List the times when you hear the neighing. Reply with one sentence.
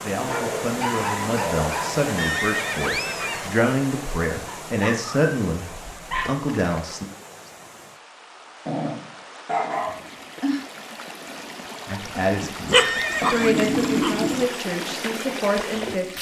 The neighing can be heard from 2.1 to 3.5 s, from 6.2 to 7.5 s and from 12.8 to 13.6 s.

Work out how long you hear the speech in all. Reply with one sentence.
You can hear the speech for 11 seconds altogether.